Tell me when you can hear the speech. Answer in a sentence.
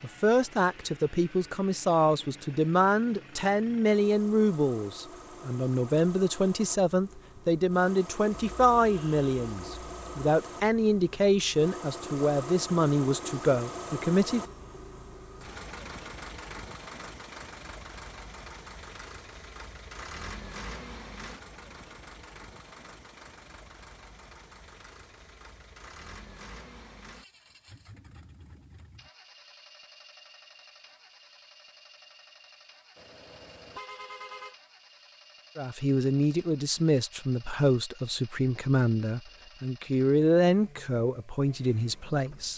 You can hear the speech from 0.0 to 14.4 s and from 35.5 to 42.5 s.